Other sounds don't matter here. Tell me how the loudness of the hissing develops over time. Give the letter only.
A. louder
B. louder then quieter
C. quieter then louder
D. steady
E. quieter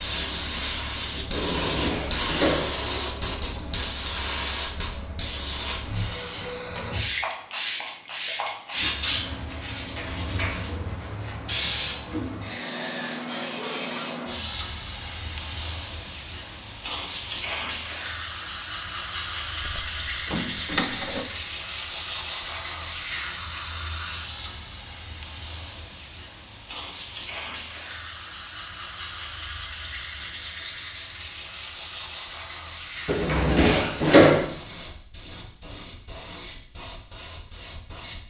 E.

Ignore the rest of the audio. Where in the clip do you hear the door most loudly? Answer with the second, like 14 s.
34 s.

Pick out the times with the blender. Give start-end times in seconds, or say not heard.
not heard.